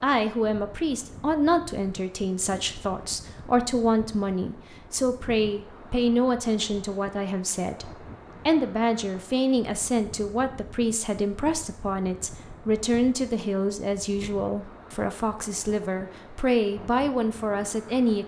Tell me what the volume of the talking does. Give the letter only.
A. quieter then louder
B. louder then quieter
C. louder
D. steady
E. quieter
D.